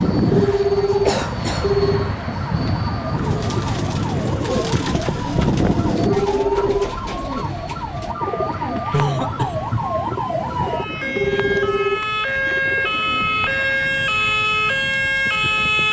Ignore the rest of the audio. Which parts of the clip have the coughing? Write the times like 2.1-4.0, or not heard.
0.2-1.7, 8.9-9.8.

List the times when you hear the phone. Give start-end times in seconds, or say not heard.
0.3-2.1, 6.0-6.8, 11.2-12.1.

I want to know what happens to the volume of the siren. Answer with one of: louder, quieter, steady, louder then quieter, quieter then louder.
louder.